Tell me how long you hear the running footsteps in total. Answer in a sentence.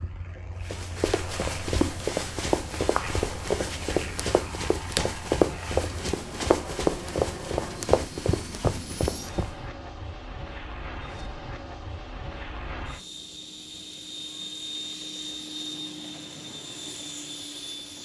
You can hear the running footsteps for 9 seconds altogether.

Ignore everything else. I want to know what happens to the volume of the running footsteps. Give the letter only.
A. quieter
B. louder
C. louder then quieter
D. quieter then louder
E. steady
E.